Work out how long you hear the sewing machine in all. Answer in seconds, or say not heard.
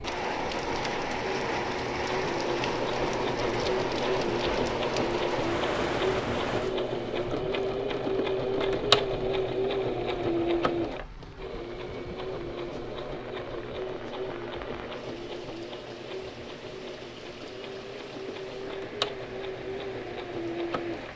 21 s.